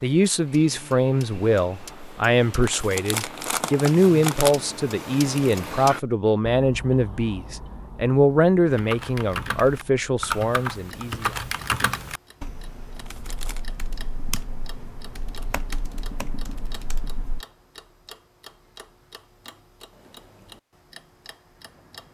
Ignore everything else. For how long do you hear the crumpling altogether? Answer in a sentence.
You can hear the crumpling for 3 seconds altogether.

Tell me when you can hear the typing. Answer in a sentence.
You can hear the typing from 8.7 to 17.4 s.